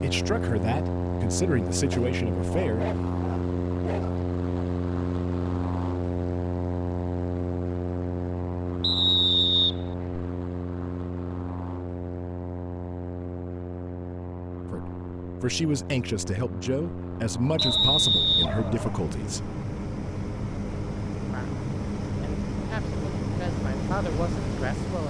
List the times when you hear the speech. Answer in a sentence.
You can hear the speech from 0.0 to 2.9 s, from 14.7 to 19.5 s and from 21.2 to 25.0 s.